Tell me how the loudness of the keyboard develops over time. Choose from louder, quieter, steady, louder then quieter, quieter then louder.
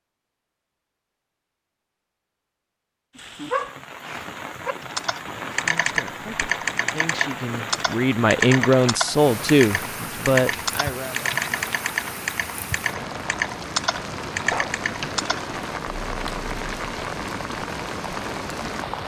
steady.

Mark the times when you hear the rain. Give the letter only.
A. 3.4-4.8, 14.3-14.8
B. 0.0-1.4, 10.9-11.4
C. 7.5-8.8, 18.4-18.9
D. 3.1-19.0
D.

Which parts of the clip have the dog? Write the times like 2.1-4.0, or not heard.
3.4-4.8, 14.3-14.8.